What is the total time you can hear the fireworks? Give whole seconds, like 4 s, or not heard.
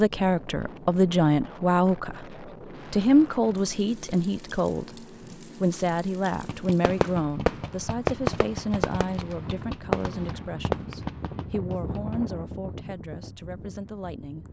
6 s.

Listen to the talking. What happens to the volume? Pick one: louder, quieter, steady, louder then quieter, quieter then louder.
quieter.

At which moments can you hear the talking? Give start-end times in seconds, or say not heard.
0.0-14.4.